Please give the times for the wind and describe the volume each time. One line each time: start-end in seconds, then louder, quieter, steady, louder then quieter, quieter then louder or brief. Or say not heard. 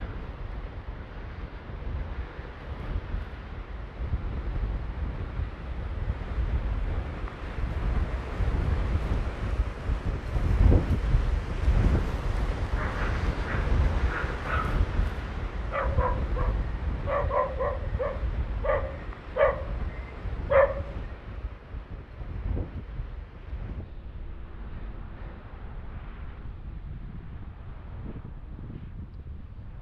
0.0-29.7 louder then quieter.